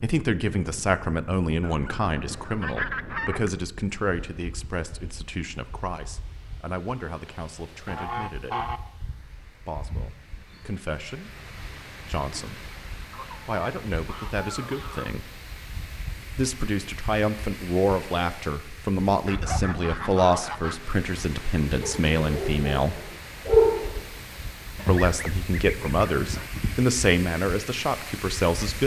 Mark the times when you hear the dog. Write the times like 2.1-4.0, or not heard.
21.8-23.9.